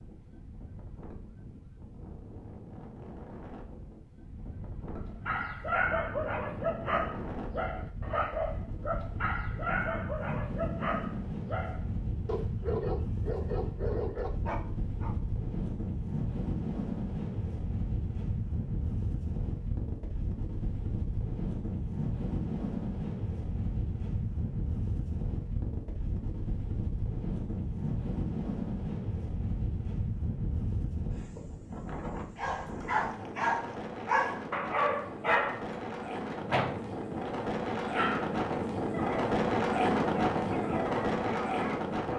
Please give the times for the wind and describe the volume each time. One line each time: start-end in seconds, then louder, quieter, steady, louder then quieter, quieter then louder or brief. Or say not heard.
0.0-42.1 louder.